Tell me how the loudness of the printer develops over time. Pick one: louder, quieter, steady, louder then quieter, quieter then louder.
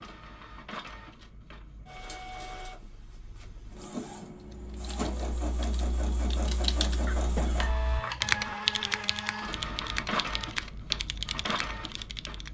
louder.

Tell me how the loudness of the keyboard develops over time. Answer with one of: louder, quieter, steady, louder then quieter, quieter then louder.
louder then quieter.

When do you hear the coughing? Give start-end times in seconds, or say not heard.
7.0-8.6.